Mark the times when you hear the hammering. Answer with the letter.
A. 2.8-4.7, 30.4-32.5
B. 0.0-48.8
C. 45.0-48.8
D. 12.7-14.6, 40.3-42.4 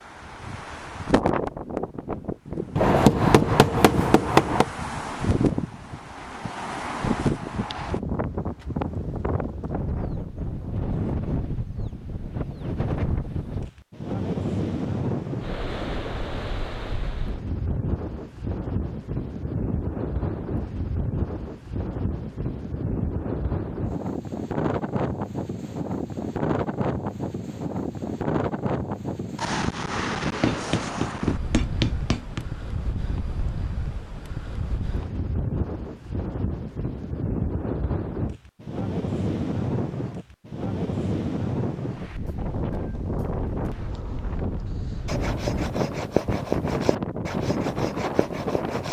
A.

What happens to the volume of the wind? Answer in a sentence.
The volume of the wind stays about the same.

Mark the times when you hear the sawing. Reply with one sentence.
You can hear the sawing from 45.0 to 48.8 s.